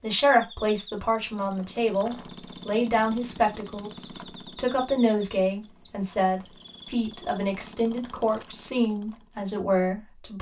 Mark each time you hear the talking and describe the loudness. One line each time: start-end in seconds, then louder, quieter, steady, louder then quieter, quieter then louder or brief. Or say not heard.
0.0-10.3 steady.